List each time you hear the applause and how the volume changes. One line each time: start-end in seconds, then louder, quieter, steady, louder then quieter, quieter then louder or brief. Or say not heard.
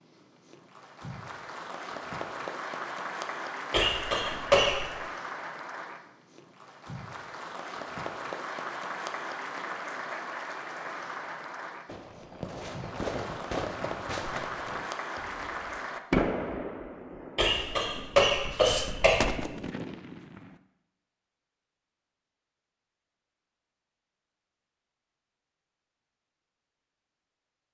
0.0-16.0 steady.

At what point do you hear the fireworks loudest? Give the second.
16 s.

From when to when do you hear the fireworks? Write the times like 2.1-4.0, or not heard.
11.8-20.6.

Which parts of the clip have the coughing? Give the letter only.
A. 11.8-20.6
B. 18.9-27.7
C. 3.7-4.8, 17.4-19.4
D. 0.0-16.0
C.